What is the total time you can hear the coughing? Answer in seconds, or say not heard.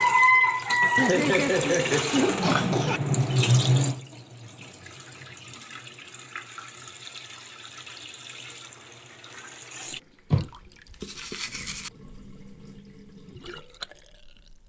2 s.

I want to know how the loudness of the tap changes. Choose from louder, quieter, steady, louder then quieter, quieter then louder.
quieter.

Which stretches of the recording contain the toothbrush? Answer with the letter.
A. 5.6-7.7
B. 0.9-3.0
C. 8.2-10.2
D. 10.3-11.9
D.